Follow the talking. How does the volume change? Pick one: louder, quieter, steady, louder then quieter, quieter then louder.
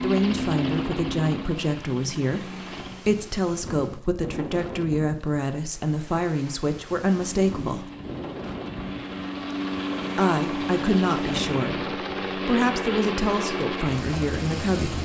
steady.